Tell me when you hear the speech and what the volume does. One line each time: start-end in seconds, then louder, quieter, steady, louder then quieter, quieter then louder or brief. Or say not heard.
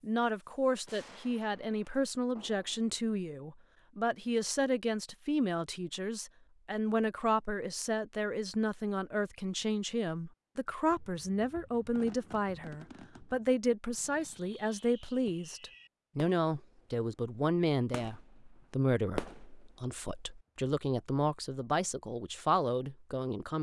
0.0-23.5 steady.